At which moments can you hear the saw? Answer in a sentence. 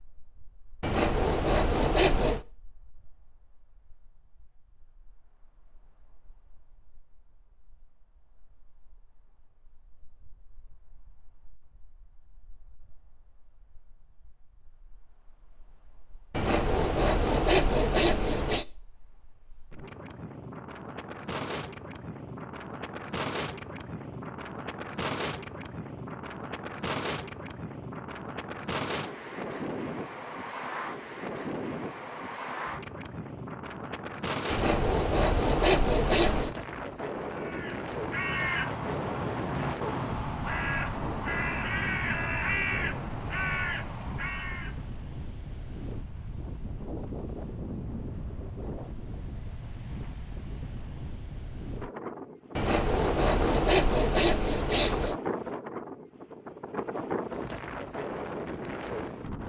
You can hear the saw from 0.8 to 2.4 s, from 16.3 to 18.6 s, from 34.5 to 36.5 s and from 52.5 to 55.1 s.